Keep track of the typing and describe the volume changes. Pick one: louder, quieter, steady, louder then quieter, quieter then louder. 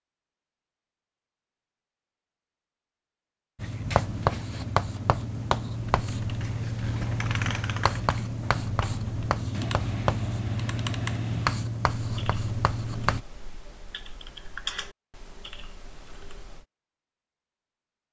quieter then louder.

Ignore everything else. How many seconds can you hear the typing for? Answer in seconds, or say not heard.
11 s.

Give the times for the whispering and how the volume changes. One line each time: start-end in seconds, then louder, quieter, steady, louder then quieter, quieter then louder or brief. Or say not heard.
not heard.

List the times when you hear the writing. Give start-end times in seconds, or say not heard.
3.5-13.2.